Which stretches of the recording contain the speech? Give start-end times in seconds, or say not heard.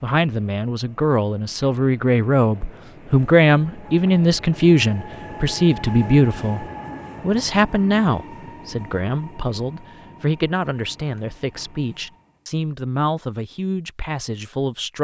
0.0-14.9.